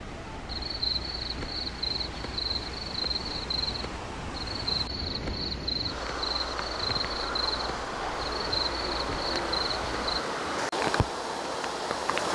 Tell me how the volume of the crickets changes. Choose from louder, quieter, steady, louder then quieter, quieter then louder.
steady.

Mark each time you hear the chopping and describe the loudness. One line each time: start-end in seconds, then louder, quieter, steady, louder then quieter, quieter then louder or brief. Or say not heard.
not heard.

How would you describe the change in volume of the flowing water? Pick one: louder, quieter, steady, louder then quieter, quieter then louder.
louder.